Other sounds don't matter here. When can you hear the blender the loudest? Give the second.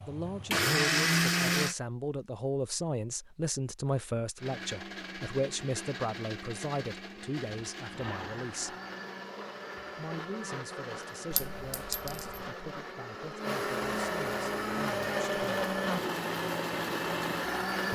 1 s.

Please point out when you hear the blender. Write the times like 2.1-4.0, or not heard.
0.0-1.8, 4.3-17.8.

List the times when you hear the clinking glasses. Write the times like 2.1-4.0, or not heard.
11.3-12.4.